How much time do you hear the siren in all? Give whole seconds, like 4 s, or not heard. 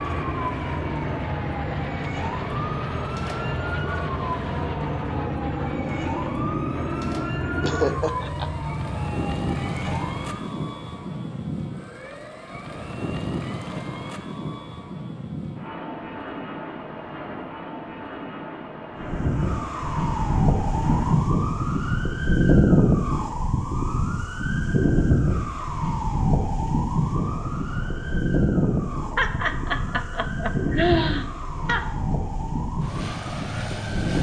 26 s.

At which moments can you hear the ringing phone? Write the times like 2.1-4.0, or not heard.
not heard.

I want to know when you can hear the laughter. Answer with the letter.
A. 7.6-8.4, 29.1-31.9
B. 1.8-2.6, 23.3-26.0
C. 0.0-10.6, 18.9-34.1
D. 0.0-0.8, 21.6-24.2
A.